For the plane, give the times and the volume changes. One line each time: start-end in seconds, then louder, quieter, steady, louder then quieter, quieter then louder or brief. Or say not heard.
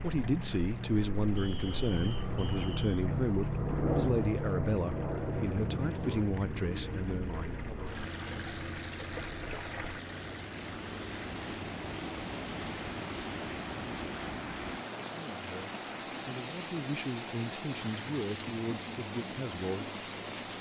0.0-20.5 quieter.